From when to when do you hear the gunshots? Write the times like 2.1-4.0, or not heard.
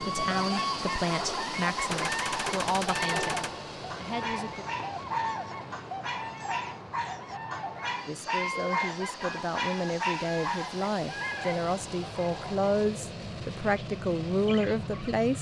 1.9-3.5.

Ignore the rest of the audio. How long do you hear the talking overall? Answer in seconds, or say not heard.
12 s.